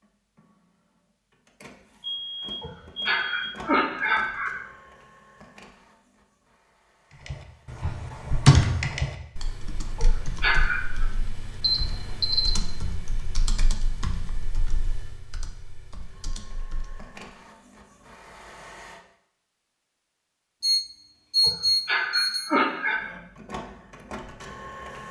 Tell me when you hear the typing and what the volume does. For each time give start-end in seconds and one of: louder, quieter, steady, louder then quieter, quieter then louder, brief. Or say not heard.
7.2-17.1 quieter.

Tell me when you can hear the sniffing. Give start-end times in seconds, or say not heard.
2.6-4.5, 9.9-11.1, 21.4-23.0.